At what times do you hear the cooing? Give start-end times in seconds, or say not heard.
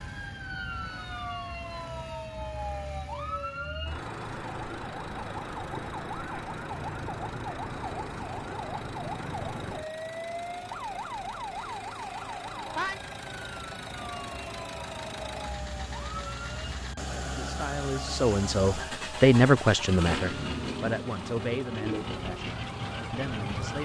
21.8-23.8.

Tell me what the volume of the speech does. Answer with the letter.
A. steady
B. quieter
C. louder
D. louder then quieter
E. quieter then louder
D.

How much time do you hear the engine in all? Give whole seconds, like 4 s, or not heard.
24 s.